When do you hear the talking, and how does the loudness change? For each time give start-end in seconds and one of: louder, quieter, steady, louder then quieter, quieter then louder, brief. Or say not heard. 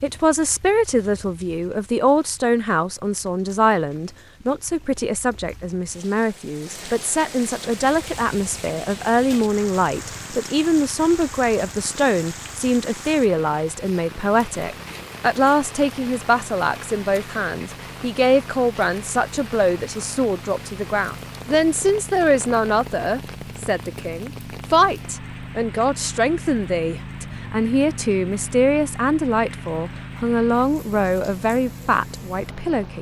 0.0-32.9 steady.